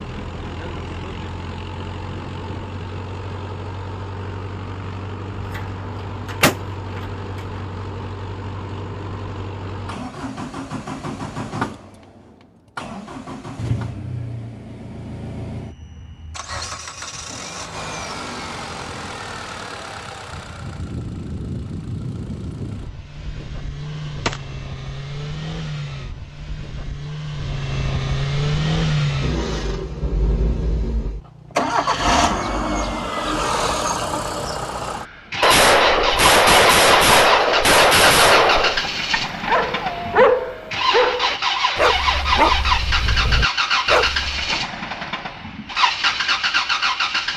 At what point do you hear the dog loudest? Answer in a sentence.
The volume of the dog peaks at 40 seconds.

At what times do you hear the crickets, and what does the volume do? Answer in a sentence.
The crickets can't be heard in this clip.